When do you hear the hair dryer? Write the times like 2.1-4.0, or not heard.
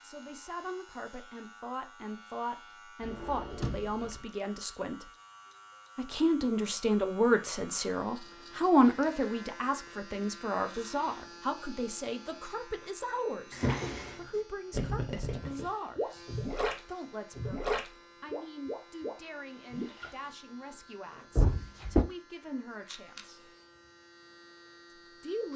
not heard.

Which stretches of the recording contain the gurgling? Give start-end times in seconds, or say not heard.
14.7-20.1.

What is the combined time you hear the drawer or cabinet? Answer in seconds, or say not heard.
3 s.